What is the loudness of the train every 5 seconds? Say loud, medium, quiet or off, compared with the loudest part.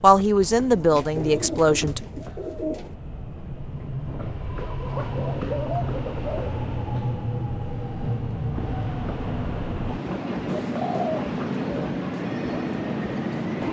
medium, loud, loud.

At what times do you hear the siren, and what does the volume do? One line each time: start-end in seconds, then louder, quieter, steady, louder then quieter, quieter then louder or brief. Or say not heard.
not heard.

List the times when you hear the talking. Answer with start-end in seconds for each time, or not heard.
0.0-2.0.